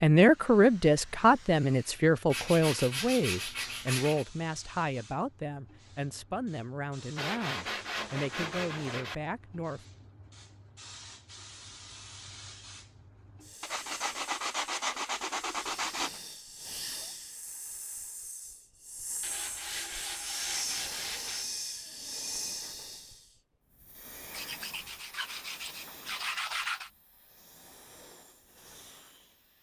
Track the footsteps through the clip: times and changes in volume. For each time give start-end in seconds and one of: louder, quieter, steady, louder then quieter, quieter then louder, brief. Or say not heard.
not heard.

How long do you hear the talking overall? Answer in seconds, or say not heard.
10 s.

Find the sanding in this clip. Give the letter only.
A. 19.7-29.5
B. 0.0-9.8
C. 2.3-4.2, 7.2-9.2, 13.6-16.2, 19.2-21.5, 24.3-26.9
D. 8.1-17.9
C.